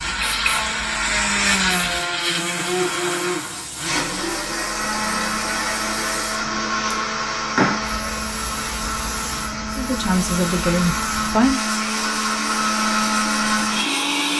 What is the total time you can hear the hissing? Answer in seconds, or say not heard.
14 s.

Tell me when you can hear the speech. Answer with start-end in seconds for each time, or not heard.
9.8-11.6.